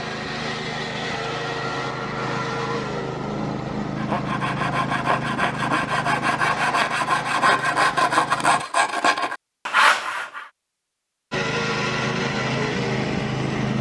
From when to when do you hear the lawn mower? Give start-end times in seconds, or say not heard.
0.0-8.7, 11.3-13.7.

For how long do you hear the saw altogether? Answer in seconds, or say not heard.
7 s.